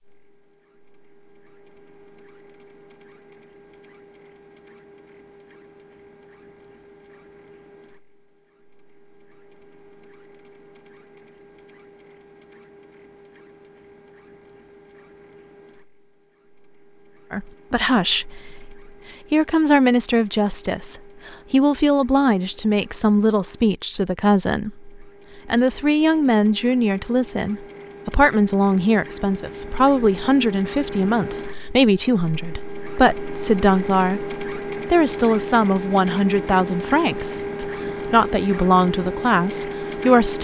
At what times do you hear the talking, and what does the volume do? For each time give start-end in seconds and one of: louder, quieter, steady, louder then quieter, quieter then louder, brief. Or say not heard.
17.3-40.3 steady.